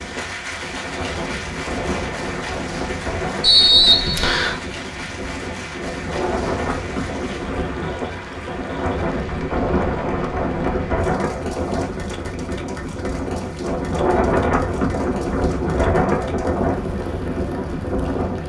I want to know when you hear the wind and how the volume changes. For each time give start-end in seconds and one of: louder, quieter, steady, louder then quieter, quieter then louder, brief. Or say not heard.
0.0-18.4 louder.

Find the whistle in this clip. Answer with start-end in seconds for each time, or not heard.
3.4-4.5.